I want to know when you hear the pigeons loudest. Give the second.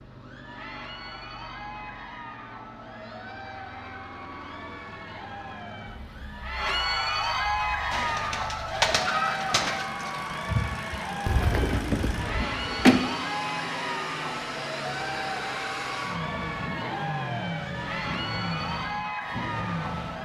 13 s.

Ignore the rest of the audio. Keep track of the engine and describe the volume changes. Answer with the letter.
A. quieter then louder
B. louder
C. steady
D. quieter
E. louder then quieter
B.